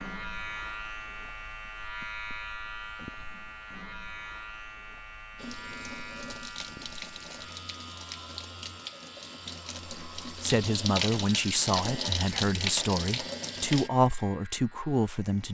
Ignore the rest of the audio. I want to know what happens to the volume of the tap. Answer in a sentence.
The volume of the tap goes up.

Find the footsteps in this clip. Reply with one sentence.
You can't hear the footsteps here.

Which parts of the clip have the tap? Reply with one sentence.
The tap can be heard from 5.3 to 13.9 s.